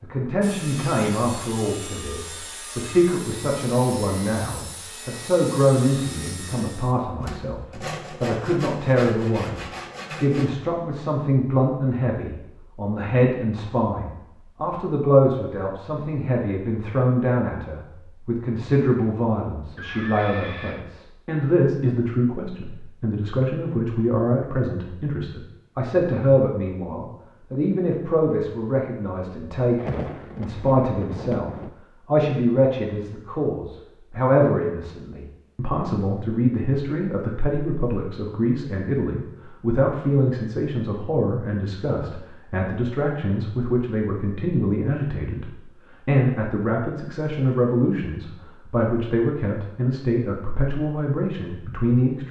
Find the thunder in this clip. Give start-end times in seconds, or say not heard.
29.8-31.7.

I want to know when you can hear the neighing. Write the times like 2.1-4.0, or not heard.
19.8-20.9.